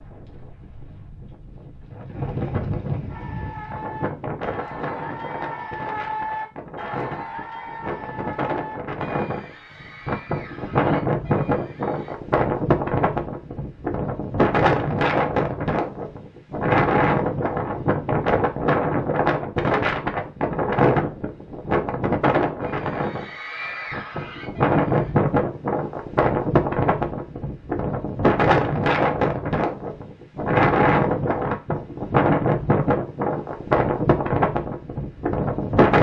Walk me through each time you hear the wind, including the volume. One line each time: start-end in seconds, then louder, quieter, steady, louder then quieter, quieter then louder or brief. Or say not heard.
0.0-35.9 louder.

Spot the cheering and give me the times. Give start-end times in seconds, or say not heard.
3.0-12.2, 22.6-25.1.